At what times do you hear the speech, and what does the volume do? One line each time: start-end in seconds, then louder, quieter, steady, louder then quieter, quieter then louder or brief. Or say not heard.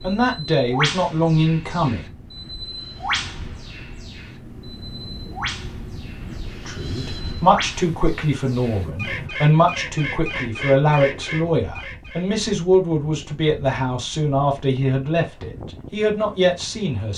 0.0-2.0 brief
6.7-17.1 steady.